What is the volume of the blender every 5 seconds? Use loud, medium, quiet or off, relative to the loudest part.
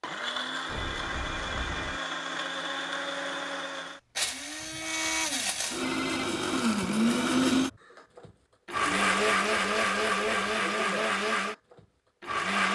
medium, loud, loud.